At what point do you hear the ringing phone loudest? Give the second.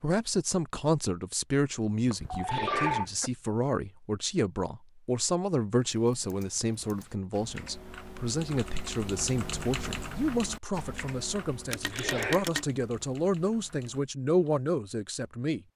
3 s.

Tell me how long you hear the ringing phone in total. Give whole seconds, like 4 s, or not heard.
2 s.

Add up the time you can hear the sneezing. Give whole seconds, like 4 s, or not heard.
2 s.